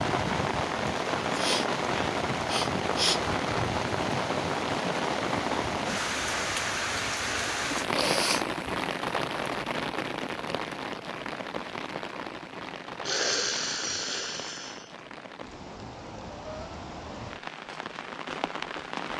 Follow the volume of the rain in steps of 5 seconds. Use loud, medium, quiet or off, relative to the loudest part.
loud, loud, medium, medium.